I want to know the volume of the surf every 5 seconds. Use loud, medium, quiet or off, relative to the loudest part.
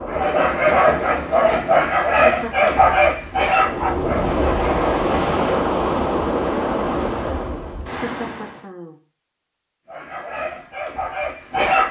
loud, loud, off.